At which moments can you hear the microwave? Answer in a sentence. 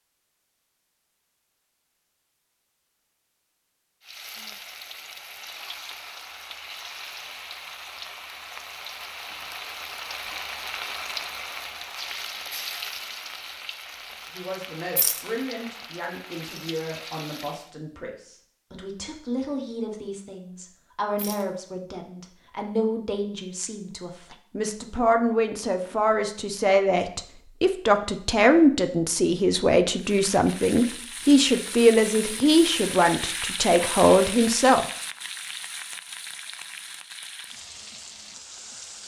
The microwave can't be heard in this clip.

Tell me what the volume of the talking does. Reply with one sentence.
The volume of the talking goes up.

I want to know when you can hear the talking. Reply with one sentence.
You can hear the talking from 14.3 to 34.9 s.